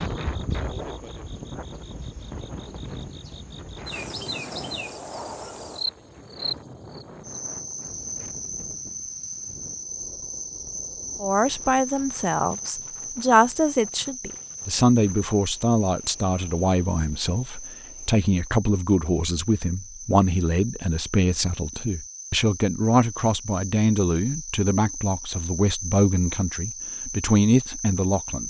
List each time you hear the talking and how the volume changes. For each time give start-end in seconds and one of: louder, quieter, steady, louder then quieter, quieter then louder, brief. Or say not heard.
11.2-28.4 steady.